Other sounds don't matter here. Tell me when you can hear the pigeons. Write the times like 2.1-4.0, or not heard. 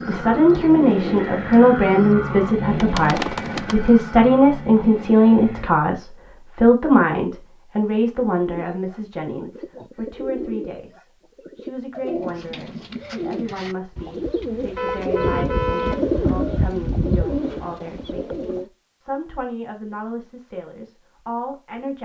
0.0-4.0, 8.4-18.7.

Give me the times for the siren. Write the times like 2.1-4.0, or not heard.
not heard.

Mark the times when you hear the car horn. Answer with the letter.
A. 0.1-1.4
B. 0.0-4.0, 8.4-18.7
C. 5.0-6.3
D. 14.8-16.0
D.